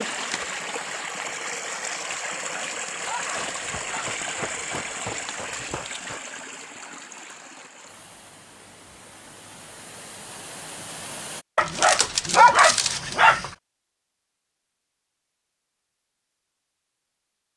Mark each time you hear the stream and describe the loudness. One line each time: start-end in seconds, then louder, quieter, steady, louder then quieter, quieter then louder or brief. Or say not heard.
0.0-11.4 quieter.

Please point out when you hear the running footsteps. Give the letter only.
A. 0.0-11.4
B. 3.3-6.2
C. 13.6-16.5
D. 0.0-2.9
B.